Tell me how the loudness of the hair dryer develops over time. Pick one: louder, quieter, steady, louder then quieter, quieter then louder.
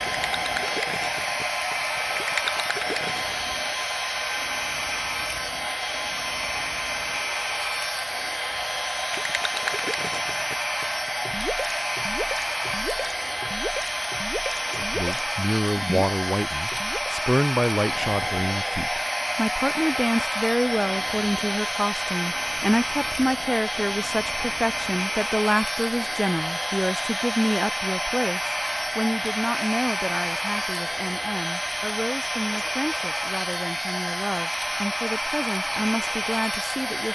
steady.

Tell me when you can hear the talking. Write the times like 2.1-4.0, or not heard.
14.8-37.1.